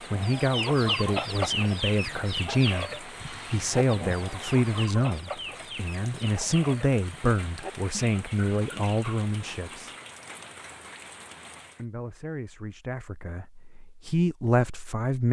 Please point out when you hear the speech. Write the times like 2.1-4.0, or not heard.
0.1-9.9, 11.8-15.2.